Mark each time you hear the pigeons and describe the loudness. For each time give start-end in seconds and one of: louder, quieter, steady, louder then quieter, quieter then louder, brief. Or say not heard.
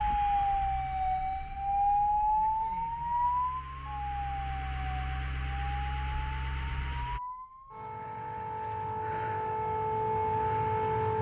not heard.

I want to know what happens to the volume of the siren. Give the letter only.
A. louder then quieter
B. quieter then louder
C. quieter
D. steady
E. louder
B.